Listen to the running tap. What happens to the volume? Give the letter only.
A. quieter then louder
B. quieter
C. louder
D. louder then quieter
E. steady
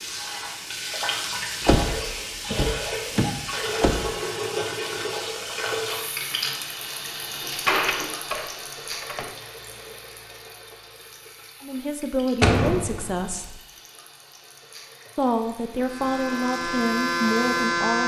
B.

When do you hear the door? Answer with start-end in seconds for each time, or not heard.
1.6-4.0, 7.4-9.3, 12.4-13.5.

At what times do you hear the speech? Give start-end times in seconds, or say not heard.
11.6-13.6, 15.2-18.0.